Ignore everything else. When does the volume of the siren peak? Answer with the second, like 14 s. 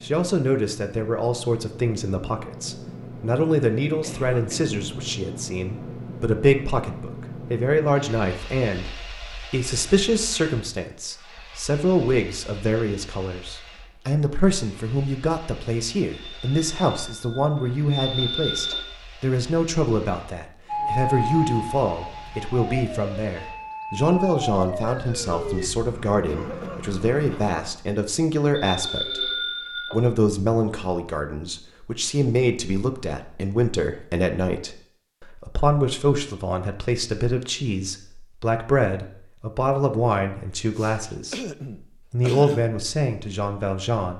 21 s.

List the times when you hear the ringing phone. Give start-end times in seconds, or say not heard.
16.1-18.9, 28.6-30.1.